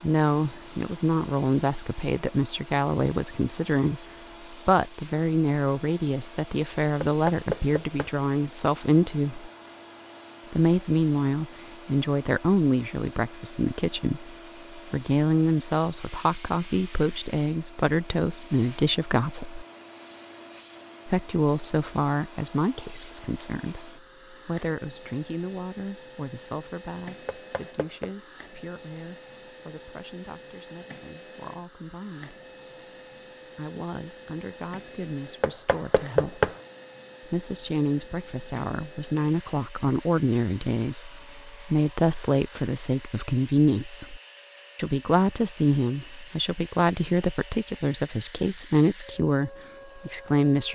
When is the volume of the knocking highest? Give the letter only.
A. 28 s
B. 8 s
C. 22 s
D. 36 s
D.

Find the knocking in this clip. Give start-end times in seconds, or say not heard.
7.0-8.2, 27.2-28.1, 35.4-36.5.